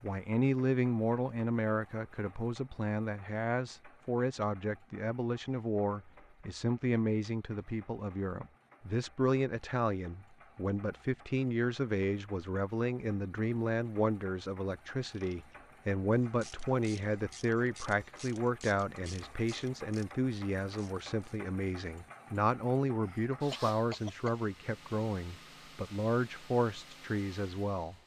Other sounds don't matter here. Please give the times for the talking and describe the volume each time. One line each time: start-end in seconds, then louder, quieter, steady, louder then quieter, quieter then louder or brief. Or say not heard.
0.0-27.9 steady.